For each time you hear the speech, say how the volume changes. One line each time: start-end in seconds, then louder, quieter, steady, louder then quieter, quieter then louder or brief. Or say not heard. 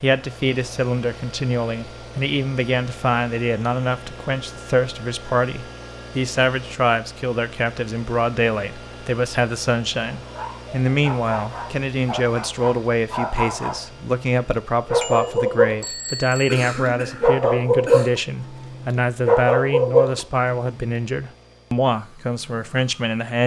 0.0-23.4 steady.